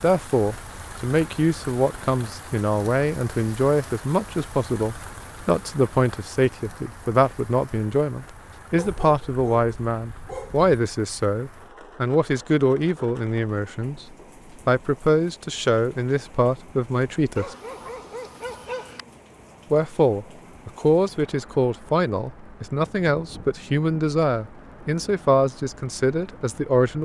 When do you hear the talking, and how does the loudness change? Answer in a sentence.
The talking can be heard from 0.0 to 14.1 s, at a steady volume; briefly from 14.7 to 17.6 s; and from 19.7 to 27.0 s, at a steady volume.